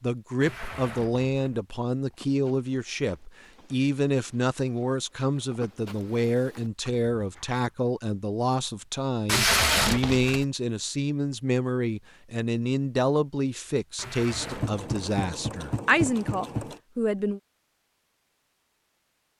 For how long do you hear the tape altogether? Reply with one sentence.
The tape can be heard for 3 seconds in total.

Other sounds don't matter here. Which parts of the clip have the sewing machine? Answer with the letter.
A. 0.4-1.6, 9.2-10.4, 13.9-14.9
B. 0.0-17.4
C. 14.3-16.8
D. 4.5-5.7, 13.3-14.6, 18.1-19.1
C.